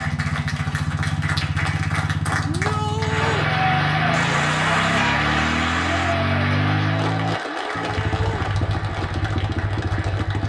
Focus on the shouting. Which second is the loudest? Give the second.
3 s.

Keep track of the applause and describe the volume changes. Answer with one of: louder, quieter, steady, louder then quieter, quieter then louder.
louder then quieter.